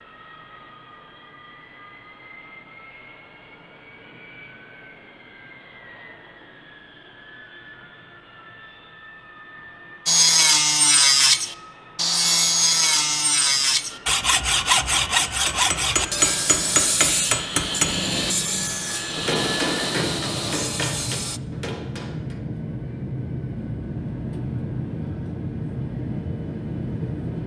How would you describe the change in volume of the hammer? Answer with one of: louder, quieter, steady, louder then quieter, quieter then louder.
quieter.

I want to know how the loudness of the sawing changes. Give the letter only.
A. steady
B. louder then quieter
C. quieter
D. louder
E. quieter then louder
C.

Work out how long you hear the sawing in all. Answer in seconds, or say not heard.
11 s.